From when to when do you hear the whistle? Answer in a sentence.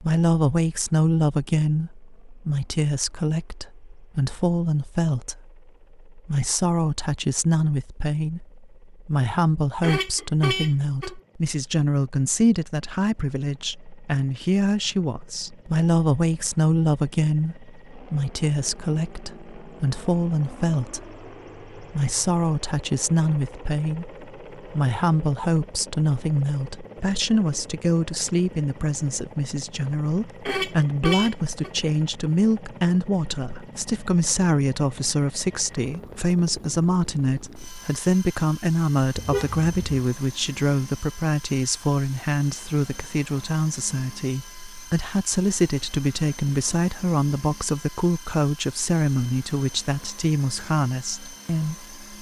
You can't hear the whistle here.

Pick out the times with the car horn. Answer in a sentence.
The car horn can be heard from 9.8 to 11.2 s, from 30.4 to 31.7 s and from 39.1 to 40.0 s.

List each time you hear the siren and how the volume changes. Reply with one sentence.
You can't hear the siren here.